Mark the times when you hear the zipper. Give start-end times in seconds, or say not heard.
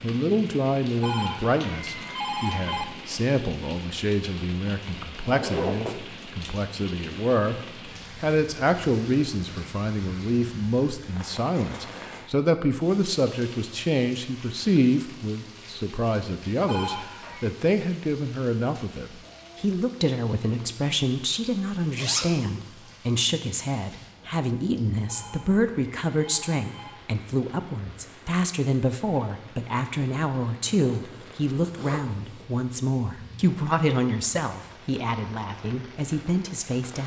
5.2-6.0, 21.9-22.4, 31.0-32.5.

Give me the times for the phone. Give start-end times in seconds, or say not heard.
1.0-2.9, 16.6-17.5, 25.1-26.9.